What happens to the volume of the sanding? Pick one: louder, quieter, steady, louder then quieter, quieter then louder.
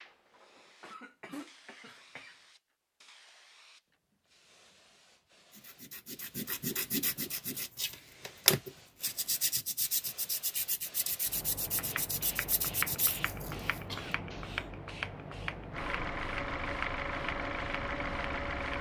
louder then quieter.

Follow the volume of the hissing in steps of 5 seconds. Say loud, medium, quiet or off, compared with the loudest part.
quiet, quiet, loud, loud.